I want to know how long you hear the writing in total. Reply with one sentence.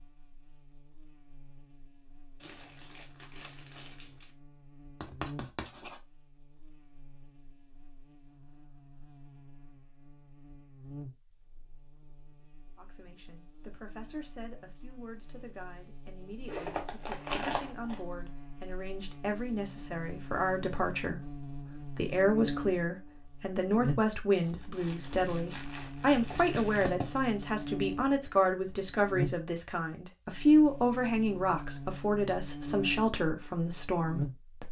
You can hear the writing for 2 seconds altogether.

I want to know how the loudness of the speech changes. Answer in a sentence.
The volume of the speech goes up.